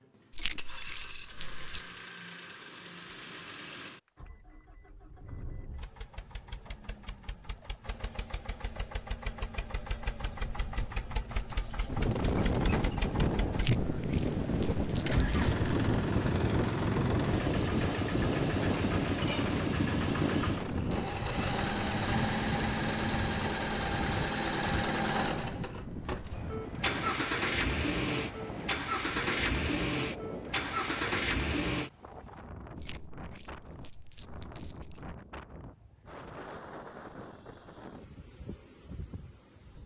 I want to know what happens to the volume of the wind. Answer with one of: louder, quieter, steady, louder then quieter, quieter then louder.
quieter.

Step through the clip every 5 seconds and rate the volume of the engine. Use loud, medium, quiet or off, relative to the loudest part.
quiet, quiet, medium, loud, loud, loud, loud, off.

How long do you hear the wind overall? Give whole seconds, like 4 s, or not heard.
28 s.